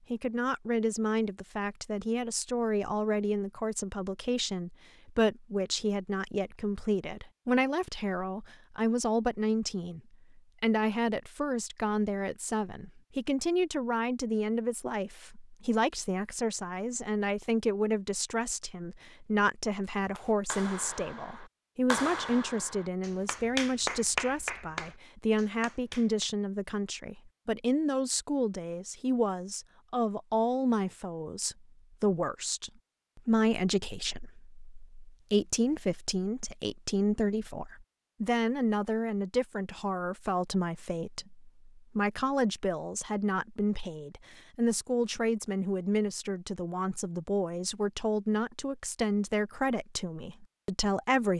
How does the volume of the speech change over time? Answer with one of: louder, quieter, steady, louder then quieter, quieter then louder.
steady.